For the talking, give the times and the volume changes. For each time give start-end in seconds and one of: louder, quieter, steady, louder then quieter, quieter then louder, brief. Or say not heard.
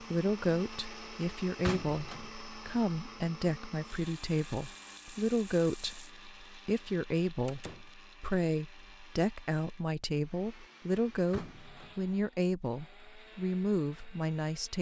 0.0-14.7 steady.